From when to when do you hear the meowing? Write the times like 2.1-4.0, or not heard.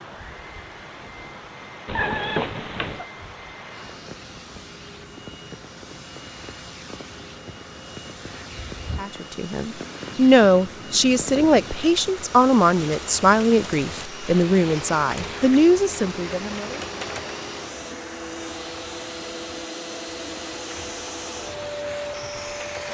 1.9-3.0.